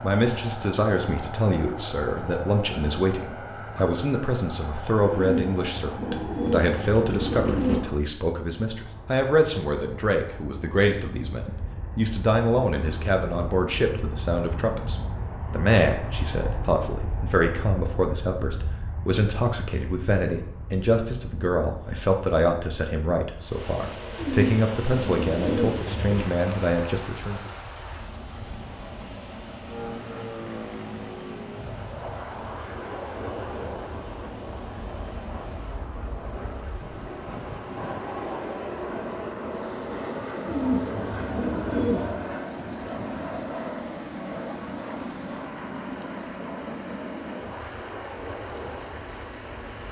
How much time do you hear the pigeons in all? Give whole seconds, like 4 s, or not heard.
7 s.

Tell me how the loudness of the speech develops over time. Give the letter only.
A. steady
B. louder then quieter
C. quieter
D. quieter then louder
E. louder
A.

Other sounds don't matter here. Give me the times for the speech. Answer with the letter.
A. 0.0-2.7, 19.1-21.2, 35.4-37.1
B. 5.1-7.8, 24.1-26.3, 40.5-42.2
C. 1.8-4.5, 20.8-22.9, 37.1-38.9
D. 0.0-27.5
D.